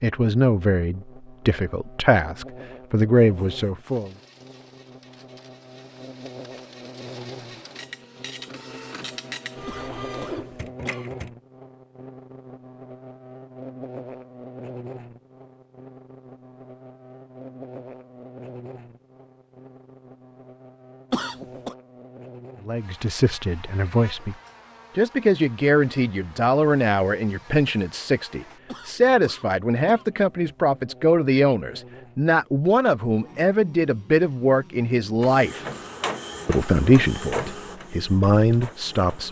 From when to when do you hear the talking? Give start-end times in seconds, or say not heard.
0.0-4.2, 22.6-24.4, 24.9-35.6, 36.5-39.2.